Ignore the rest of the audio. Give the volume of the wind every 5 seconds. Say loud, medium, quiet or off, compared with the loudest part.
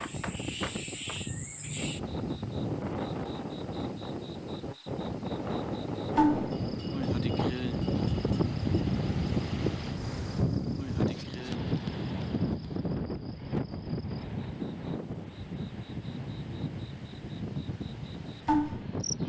medium, loud, loud, medium.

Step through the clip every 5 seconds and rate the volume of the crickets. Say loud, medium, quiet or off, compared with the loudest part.
medium, loud, medium, loud.